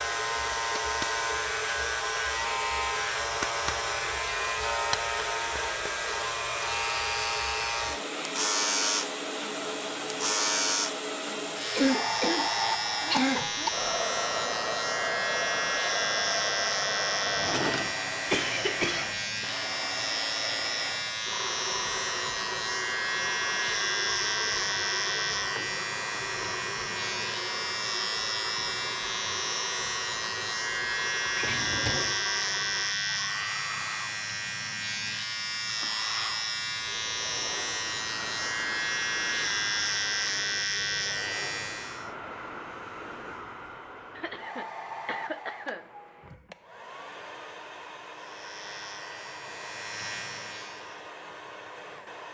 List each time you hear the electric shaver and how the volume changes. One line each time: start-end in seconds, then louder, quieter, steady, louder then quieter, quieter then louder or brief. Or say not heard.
0.0-42.1 steady
48.1-51.1 brief.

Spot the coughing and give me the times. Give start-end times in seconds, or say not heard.
11.8-13.7, 18.3-19.1, 44.1-45.9.